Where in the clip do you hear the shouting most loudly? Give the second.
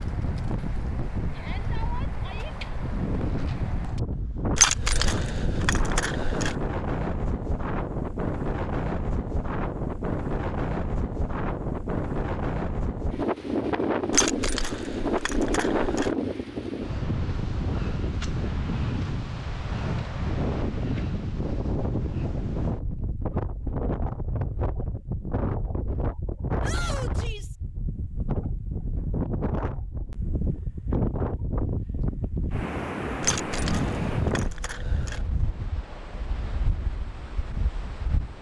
27 s.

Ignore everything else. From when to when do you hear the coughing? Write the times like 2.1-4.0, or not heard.
not heard.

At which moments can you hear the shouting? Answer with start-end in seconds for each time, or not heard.
1.3-2.5, 26.6-27.6.